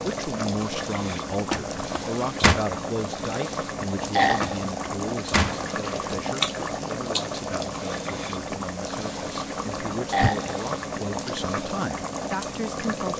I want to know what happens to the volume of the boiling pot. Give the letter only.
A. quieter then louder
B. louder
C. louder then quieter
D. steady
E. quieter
D.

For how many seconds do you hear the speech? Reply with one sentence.
The speech can be heard for 13 seconds in total.